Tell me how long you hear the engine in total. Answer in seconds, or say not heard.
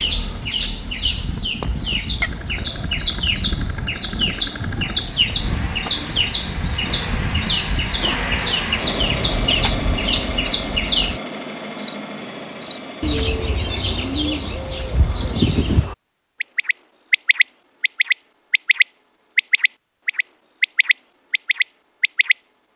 14 s.